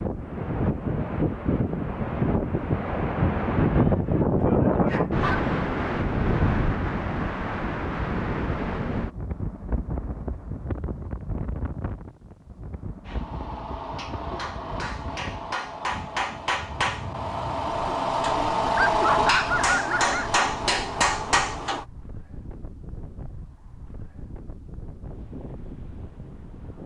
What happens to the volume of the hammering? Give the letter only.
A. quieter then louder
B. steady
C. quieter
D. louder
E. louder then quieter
D.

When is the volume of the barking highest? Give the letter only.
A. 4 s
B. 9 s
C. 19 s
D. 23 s
C.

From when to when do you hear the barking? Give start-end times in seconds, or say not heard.
4.4-5.5, 18.9-20.4.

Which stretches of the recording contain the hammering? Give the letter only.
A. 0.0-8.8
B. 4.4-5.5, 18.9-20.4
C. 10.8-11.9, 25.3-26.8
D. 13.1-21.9
D.